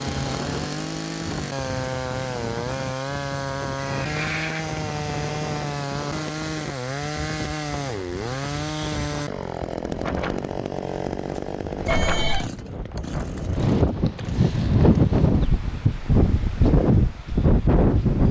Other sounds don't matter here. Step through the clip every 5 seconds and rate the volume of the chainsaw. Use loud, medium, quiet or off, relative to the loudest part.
loud, loud, loud, off.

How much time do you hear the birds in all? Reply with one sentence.
The birds can't be heard in this clip.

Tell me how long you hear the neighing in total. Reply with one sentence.
You can hear the neighing for 2 seconds altogether.